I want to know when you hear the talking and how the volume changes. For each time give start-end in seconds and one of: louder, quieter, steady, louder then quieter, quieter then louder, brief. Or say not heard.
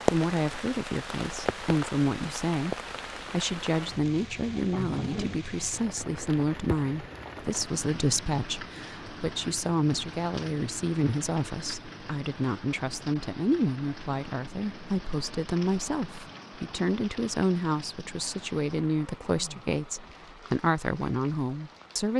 0.1-22.1 steady.